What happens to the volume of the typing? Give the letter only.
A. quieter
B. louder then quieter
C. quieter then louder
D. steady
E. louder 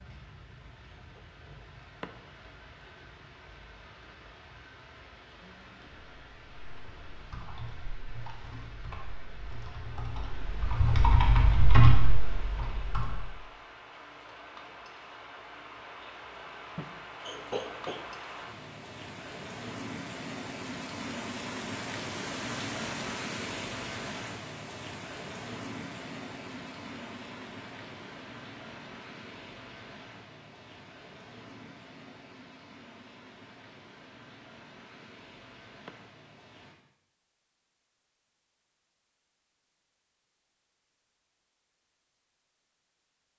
E.